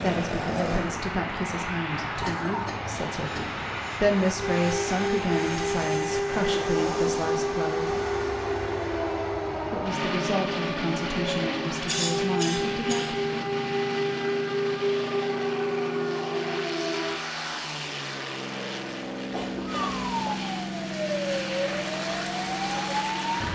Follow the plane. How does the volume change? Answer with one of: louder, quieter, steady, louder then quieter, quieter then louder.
steady.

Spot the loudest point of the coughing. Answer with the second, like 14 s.
12 s.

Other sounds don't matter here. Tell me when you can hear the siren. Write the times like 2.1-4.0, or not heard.
0.0-2.5, 4.3-17.2, 19.6-23.4.